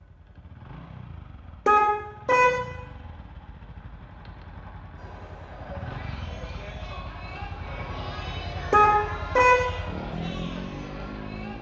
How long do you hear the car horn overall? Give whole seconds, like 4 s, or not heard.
2 s.